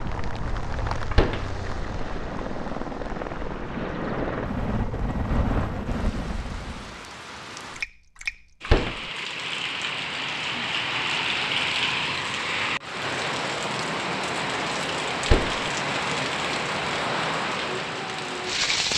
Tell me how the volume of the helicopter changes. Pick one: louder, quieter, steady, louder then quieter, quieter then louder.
louder.